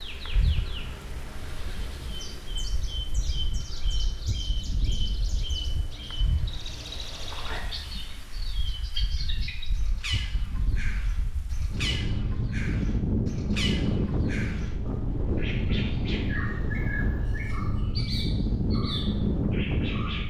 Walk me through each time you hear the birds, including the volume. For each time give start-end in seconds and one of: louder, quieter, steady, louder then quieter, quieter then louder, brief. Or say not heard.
0.0-20.2 steady.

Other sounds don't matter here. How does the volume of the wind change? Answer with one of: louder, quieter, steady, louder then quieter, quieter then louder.
louder.